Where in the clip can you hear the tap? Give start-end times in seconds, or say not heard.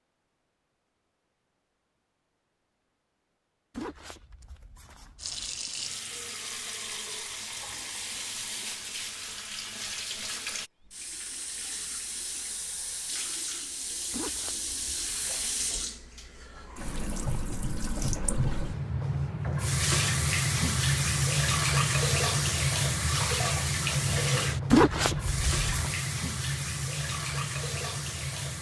5.2-28.5.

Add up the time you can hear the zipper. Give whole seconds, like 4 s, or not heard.
5 s.